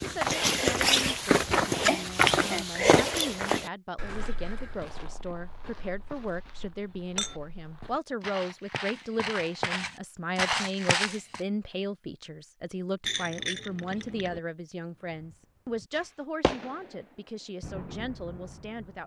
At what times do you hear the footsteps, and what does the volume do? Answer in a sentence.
The footsteps can be heard from 0.0 to 11.4 s, getting quieter then louder.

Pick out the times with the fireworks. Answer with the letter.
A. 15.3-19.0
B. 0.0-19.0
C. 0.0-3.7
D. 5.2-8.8
A.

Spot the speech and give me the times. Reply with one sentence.
You can hear the speech from 0.0 to 19.0 s.